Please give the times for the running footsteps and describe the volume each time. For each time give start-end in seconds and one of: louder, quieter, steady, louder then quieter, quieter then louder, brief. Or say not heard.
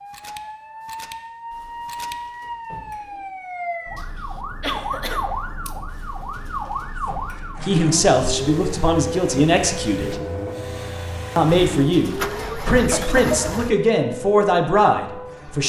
not heard.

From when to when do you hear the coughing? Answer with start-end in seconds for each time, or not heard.
4.0-5.8, 12.9-13.5.